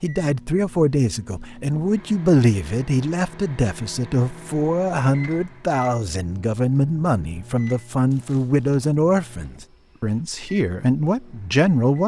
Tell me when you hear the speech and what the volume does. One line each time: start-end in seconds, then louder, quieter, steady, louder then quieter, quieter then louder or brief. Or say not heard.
0.0-12.0 steady.